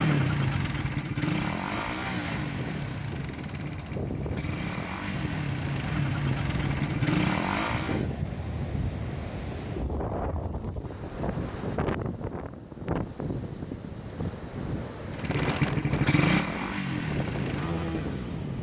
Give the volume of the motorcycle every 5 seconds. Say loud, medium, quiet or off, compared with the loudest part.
loud, loud, off, loud.